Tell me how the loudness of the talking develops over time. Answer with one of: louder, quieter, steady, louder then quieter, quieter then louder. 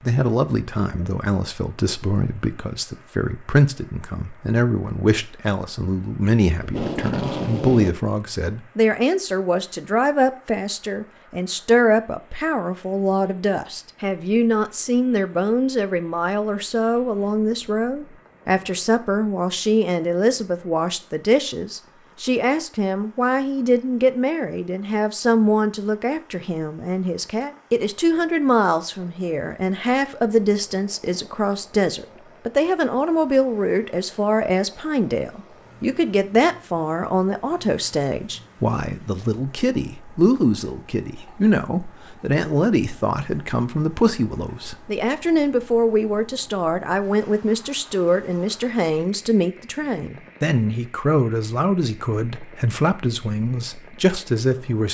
steady.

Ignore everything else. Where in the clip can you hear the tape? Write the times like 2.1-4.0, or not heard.
6.6-8.0.